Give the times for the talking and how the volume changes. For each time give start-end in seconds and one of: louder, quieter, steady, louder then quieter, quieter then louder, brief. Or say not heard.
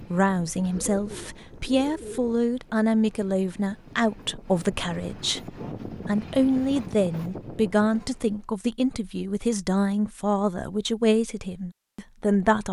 0.0-12.6 steady.